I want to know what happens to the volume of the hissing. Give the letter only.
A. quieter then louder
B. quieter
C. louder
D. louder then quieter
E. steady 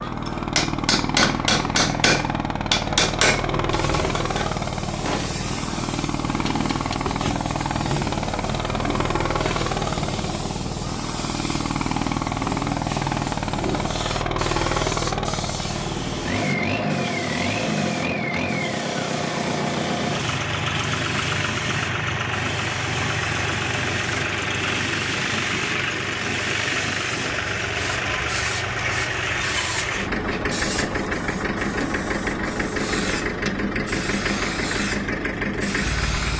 E.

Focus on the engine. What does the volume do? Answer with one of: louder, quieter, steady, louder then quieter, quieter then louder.
steady.